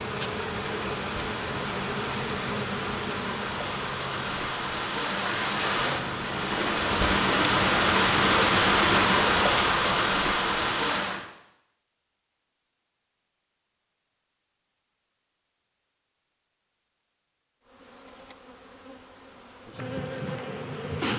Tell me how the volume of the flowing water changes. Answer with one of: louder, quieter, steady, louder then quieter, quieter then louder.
louder.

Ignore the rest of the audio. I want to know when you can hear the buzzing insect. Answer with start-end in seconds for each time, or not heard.
0.0-9.5, 17.6-21.1.